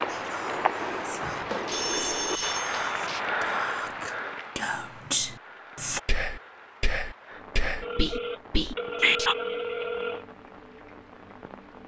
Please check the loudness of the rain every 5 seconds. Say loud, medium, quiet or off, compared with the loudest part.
loud, quiet, quiet.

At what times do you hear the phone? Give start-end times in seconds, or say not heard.
1.4-3.2, 7.8-10.2.